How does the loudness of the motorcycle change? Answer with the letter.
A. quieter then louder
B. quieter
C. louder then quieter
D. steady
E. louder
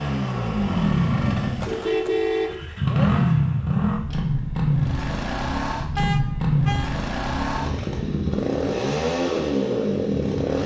D.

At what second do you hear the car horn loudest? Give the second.
2 s.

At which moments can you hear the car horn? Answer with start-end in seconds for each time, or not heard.
1.6-2.6, 6.0-6.9.